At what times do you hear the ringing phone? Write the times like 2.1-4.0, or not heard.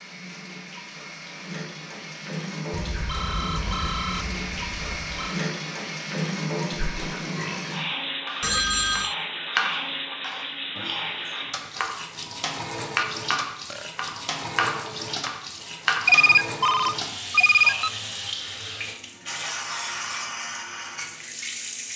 2.8-5.4, 8.4-9.2, 16.1-17.9.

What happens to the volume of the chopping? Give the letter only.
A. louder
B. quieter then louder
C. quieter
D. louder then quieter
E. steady
B.